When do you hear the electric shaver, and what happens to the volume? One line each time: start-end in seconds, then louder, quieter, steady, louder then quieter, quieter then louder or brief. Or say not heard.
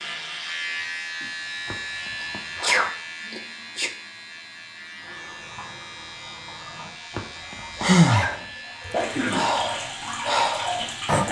0.0-11.2 quieter.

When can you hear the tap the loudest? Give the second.
11 s.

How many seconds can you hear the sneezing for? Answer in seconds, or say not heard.
2 s.